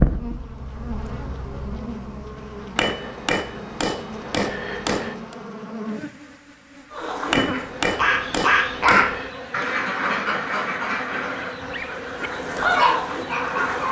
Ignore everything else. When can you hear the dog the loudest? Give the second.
13 s.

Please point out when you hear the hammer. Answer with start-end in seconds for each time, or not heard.
2.8-5.3, 7.3-9.3.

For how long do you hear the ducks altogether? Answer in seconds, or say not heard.
7 s.